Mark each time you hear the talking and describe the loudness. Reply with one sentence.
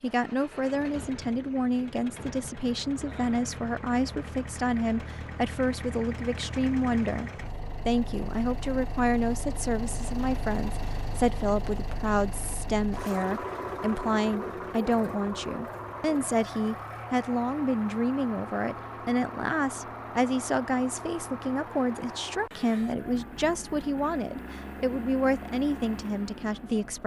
You can hear the talking from 0.0 to 27.0 s, at a steady volume.